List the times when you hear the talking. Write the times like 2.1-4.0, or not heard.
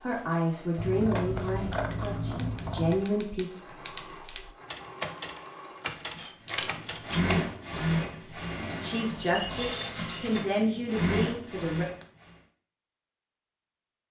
0.0-3.5, 8.2-11.8.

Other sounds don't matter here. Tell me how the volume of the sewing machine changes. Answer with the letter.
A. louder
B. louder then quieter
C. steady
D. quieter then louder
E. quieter
A.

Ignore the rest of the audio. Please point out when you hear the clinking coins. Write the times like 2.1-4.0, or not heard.
9.2-10.4.